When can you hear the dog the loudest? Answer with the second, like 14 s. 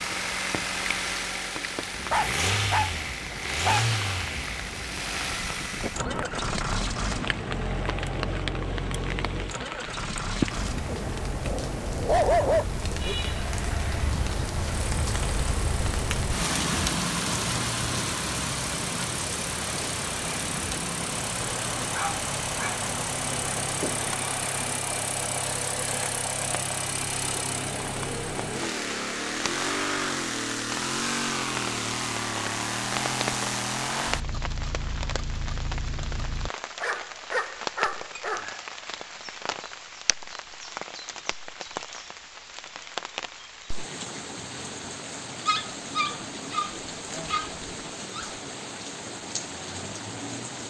12 s.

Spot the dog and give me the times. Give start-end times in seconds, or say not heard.
2.1-3.9, 10.8-12.7, 21.9-22.9, 36.8-38.5, 45.5-48.3.